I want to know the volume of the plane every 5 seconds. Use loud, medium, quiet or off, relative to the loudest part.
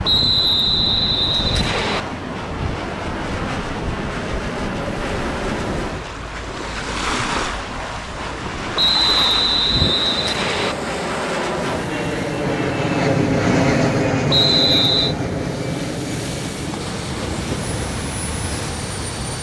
medium, medium, loud, medium.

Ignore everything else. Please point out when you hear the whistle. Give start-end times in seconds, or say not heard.
0.0-2.0, 8.8-10.8, 14.3-15.2.